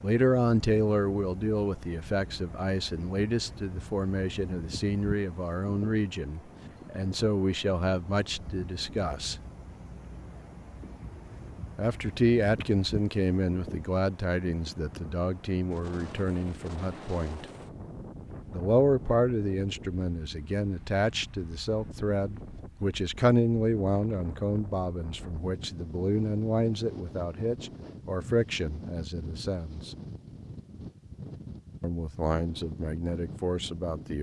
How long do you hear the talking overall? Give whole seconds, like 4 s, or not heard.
29 s.